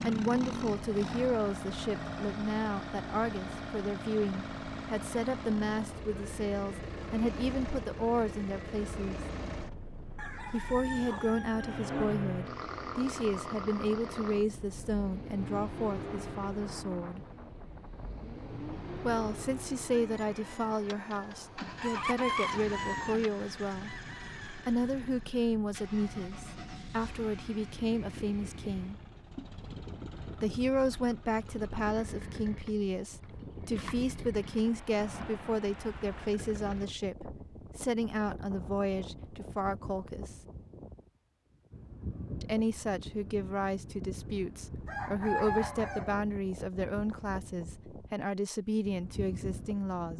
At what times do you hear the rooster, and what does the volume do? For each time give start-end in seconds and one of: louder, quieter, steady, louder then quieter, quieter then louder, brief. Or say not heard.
10.2-12.1 brief
19.9-24.6 louder then quieter
44.9-46.1 brief.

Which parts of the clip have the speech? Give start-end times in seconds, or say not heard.
0.0-9.2, 10.5-17.2, 19.1-23.9, 24.6-29.0, 30.4-40.4, 42.4-50.1.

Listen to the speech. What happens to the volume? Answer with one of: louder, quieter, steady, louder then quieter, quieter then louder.
steady.